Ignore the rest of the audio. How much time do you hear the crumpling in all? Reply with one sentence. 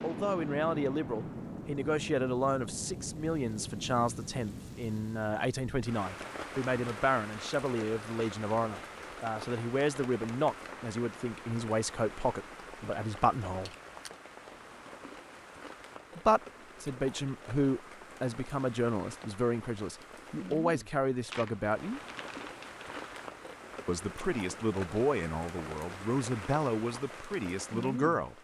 You can hear the crumpling for 2 seconds altogether.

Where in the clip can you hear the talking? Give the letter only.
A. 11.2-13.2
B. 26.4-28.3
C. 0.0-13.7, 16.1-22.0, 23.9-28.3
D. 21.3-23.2
C.